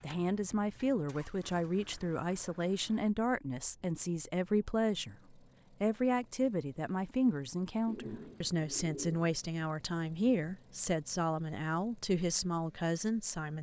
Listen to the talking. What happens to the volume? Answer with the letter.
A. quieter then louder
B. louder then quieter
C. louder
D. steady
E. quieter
D.